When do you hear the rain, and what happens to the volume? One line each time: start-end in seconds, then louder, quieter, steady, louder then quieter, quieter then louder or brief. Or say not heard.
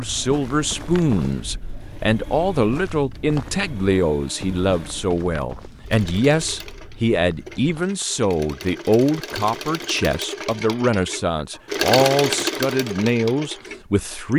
not heard.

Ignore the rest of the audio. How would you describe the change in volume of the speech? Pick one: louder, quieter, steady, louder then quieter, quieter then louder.
steady.